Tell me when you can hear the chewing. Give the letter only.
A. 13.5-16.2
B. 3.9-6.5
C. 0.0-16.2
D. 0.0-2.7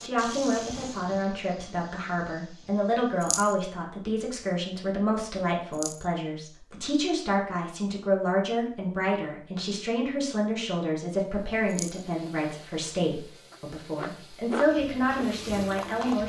A.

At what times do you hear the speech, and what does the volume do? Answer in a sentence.
You can hear the speech from 0.0 to 16.2 s, at a steady volume.